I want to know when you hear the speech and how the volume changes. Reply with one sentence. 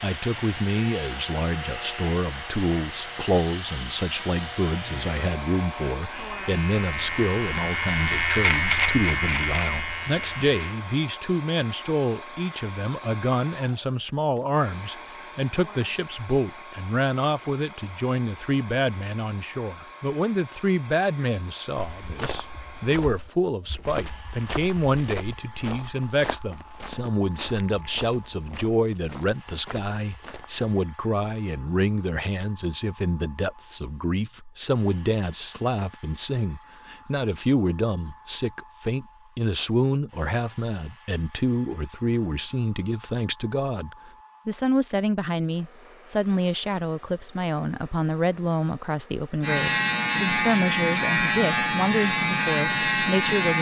The speech can be heard from 0.0 to 53.5 s, at a steady volume.